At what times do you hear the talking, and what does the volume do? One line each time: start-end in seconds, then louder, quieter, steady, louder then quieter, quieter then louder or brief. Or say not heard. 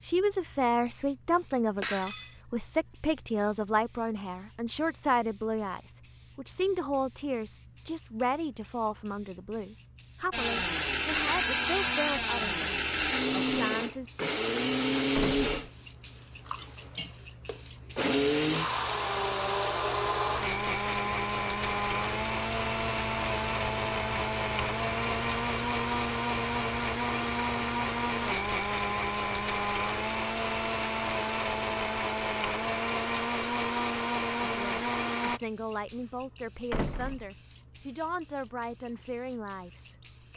0.1-14.1 quieter
34.4-40.3 steady.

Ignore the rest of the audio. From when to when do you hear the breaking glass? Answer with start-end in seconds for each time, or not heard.
1.8-2.4.